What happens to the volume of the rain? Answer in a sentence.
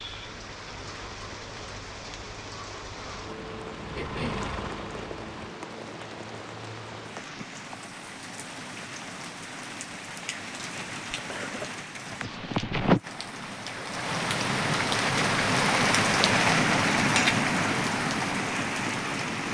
The volume of the rain goes up.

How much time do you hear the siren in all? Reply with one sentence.
You can't hear the siren here.